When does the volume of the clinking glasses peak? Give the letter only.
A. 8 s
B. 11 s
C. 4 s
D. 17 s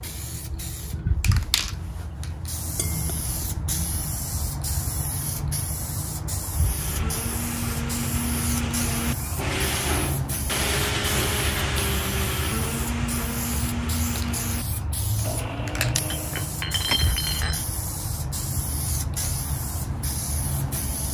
D.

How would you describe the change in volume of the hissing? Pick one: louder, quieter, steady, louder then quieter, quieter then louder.
steady.